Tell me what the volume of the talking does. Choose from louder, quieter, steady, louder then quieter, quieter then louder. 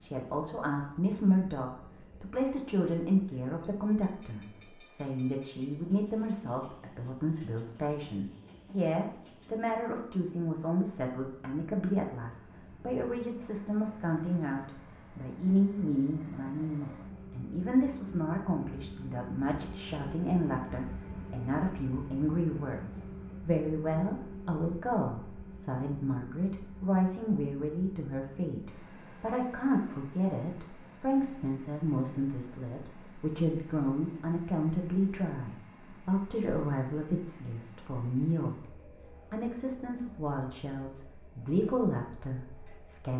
steady.